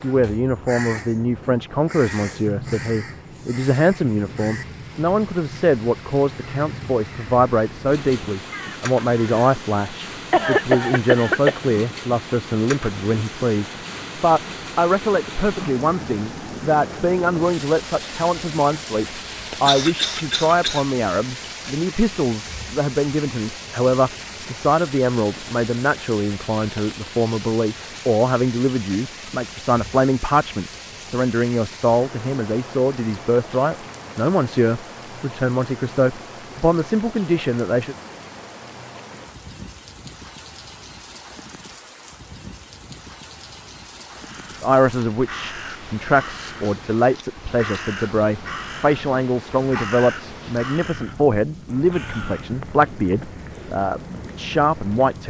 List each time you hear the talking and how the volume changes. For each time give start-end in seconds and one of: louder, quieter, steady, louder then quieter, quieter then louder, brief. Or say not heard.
0.0-38.0 steady
44.6-55.2 steady.